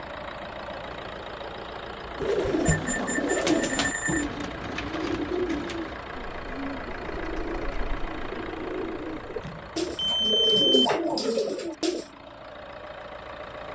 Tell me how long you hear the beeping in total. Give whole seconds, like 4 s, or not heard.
3 s.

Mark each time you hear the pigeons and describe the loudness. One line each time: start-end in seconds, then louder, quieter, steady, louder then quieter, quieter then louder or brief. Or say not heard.
2.1-12.1 quieter then louder.